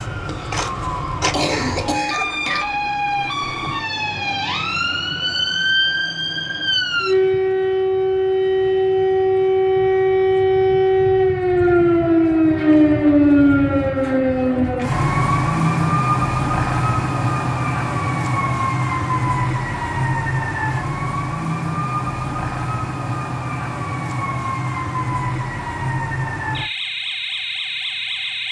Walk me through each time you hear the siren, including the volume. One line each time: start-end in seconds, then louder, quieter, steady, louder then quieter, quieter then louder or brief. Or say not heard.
0.0-28.4 louder then quieter.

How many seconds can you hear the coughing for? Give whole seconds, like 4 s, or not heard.
2 s.